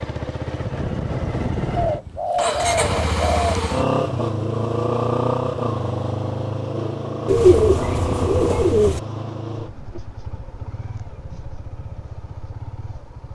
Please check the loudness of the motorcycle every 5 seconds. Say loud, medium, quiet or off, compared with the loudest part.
loud, loud, quiet.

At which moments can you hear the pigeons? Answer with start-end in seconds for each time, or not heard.
1.8-3.5, 7.2-9.0.